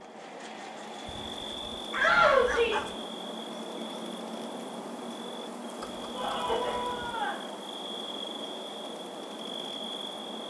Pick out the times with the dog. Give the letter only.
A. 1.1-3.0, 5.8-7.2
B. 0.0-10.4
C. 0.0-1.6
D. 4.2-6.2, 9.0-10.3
A.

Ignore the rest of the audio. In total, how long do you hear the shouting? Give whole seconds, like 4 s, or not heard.
2 s.